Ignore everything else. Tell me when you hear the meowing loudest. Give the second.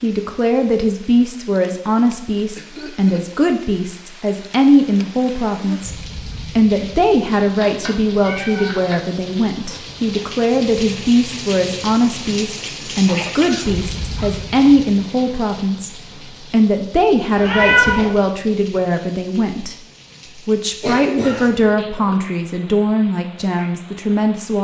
18 s.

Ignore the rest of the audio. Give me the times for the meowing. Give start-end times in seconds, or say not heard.
7.4-9.0, 17.4-18.1.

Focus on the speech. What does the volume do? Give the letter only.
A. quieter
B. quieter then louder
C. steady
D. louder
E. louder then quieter
C.